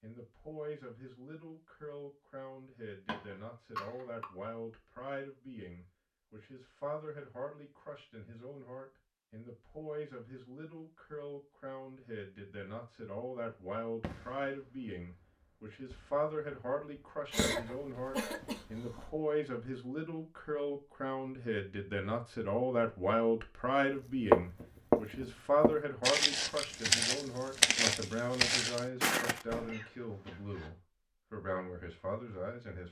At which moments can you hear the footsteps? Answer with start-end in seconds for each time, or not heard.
24.3-29.7.